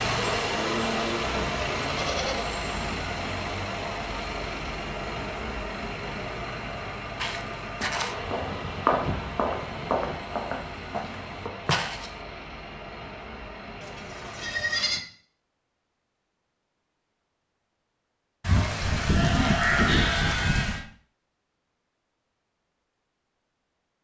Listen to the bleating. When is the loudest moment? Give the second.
20 s.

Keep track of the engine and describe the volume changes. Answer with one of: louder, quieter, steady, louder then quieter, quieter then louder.
quieter.